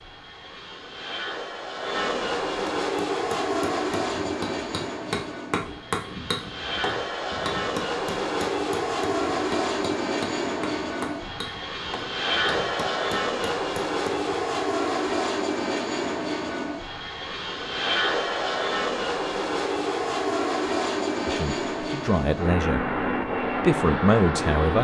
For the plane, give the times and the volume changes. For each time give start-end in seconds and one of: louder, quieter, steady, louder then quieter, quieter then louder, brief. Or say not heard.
0.0-24.8 steady.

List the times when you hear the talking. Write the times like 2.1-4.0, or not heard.
21.2-22.9, 23.6-24.8.